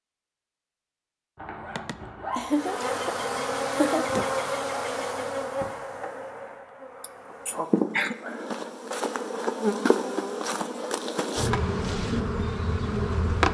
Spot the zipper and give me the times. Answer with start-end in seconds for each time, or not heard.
1.4-2.5.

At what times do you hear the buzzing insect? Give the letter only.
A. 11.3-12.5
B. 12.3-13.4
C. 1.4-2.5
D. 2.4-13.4
D.